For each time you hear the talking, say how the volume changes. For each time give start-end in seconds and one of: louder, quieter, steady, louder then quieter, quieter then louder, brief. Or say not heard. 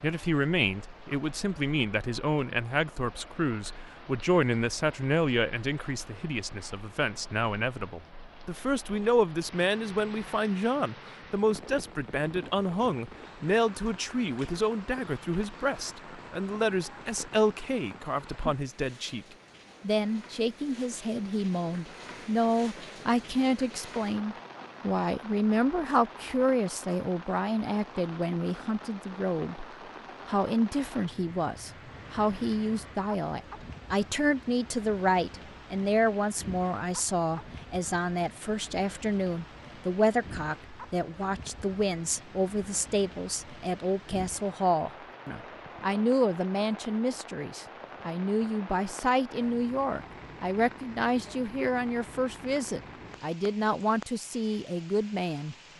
0.0-29.6 steady
30.2-55.5 steady.